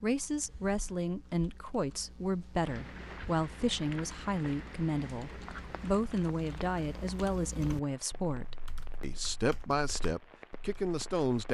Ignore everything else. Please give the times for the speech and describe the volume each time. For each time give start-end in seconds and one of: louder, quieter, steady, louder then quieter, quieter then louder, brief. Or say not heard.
0.0-11.4 steady.